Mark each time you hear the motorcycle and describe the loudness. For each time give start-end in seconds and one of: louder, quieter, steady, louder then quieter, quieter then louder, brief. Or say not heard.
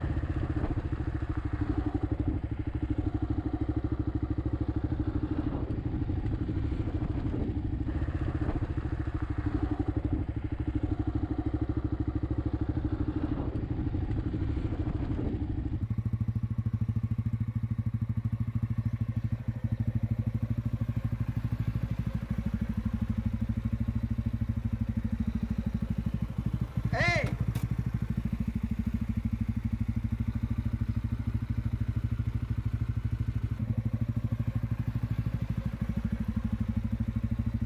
0.0-37.6 steady.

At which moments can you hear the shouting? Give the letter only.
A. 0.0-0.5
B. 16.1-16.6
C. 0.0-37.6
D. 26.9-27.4
D.